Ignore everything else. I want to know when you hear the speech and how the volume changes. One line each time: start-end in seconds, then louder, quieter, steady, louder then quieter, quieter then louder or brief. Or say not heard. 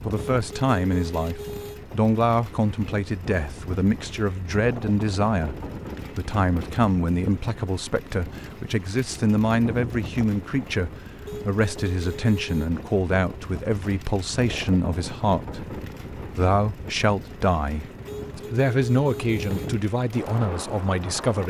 0.0-21.4 steady.